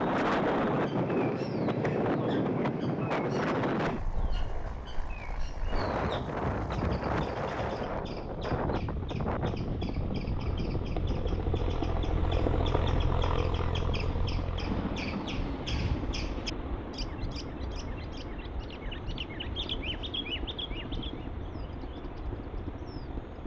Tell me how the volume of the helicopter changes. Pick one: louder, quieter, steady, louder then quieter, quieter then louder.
louder then quieter.